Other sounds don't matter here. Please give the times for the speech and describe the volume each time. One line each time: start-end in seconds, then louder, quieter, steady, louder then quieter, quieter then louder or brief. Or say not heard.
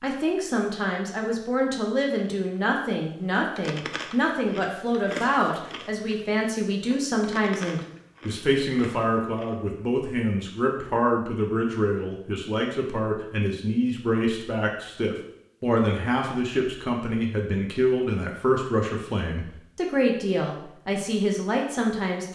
0.0-22.2 steady.